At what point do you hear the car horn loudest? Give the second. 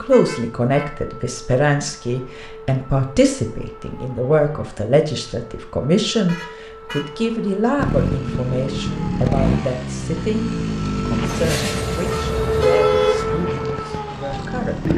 13 s.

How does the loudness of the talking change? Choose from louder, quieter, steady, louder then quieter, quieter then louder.
quieter.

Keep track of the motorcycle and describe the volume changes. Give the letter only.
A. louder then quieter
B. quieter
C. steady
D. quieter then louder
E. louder
B.